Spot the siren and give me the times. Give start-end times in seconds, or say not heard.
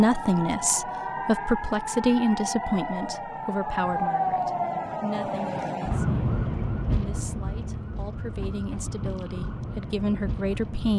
0.0-10.9.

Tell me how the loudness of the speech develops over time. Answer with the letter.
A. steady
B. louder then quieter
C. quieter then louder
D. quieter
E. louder
C.